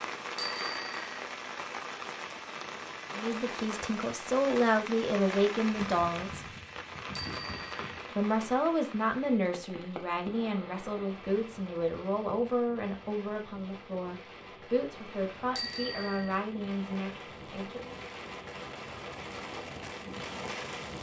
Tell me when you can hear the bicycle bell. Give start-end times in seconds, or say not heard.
0.3-1.1, 7.2-8.0, 15.6-16.4.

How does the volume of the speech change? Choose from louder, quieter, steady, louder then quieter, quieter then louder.
quieter.